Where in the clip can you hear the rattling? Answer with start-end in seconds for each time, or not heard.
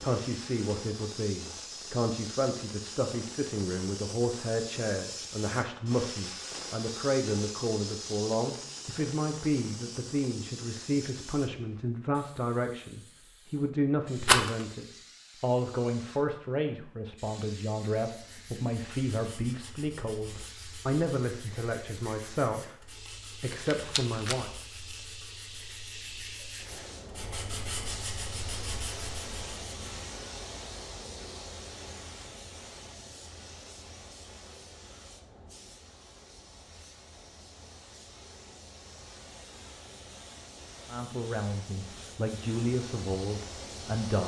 14.2-14.7, 23.5-24.4.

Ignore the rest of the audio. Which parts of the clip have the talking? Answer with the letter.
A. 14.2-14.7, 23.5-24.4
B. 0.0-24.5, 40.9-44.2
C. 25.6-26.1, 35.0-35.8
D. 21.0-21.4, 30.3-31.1
B.